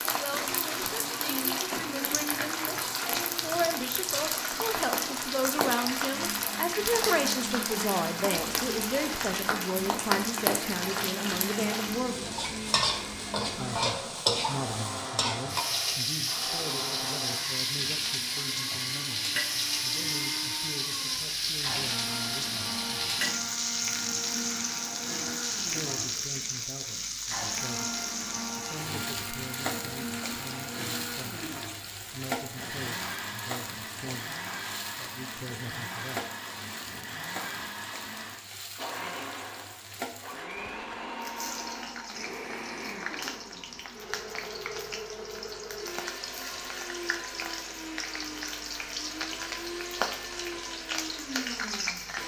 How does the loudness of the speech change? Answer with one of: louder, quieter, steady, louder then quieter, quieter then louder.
quieter.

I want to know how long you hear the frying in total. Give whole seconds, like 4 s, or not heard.
52 s.